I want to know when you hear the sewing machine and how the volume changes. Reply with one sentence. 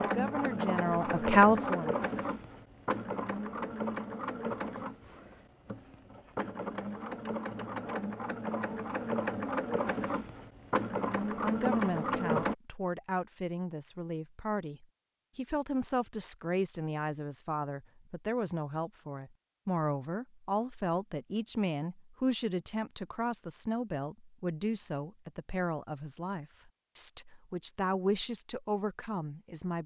The sewing machine can be heard from 0.0 to 12.6 s, getting quieter then louder.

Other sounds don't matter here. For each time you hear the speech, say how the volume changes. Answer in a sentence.
You can hear the speech briefly from 0.0 to 2.0 s; and from 11.3 to 29.8 s, at a steady volume.